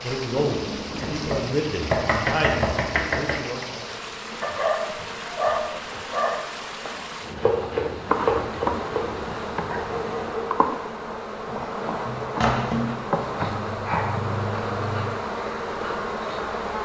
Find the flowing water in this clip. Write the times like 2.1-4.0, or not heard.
0.0-10.5.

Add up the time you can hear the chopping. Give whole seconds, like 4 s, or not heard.
6 s.